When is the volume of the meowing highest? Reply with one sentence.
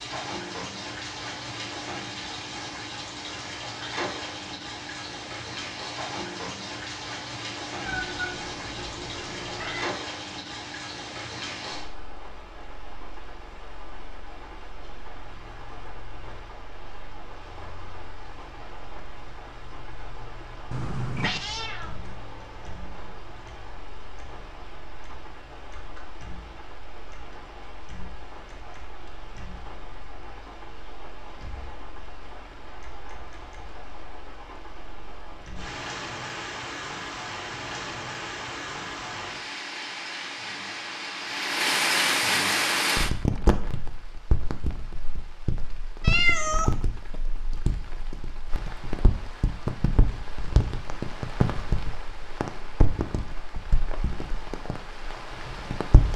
The volume of the meowing peaks at 46 seconds.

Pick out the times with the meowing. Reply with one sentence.
The meowing can be heard from 7.8 to 9.8 s, from 20.7 to 22.1 s and from 46.0 to 46.7 s.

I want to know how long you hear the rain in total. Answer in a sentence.
You can hear the rain for 56 seconds altogether.